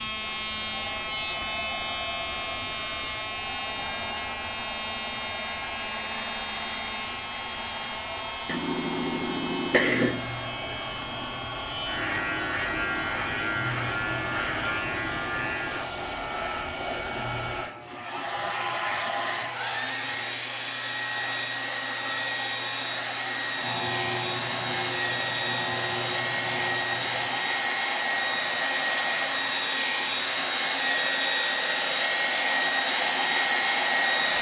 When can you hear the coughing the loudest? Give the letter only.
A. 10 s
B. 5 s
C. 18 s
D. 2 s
A.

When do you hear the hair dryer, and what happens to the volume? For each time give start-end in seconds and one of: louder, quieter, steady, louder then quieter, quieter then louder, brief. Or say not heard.
0.0-34.3 louder.